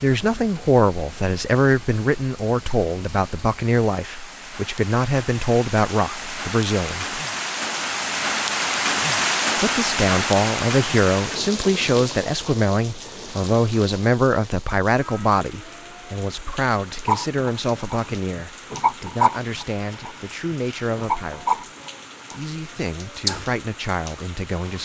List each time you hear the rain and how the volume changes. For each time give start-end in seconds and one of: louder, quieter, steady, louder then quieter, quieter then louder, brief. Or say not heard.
0.0-24.8 louder then quieter.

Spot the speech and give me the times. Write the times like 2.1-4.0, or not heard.
0.0-7.2, 9.6-21.6, 22.3-24.8.